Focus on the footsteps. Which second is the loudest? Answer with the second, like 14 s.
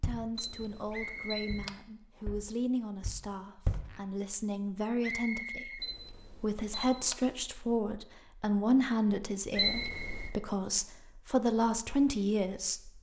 4 s.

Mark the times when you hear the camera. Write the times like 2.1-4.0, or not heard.
0.3-1.7, 5.8-7.2, 9.6-10.3.